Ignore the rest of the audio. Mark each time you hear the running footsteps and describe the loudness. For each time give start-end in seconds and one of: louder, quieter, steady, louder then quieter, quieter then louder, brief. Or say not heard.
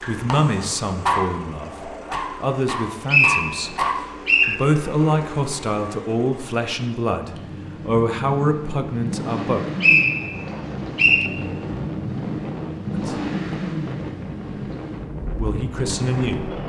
not heard.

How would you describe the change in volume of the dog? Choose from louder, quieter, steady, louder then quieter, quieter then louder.
quieter then louder.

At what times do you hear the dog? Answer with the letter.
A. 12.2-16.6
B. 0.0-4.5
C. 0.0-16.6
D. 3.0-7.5
B.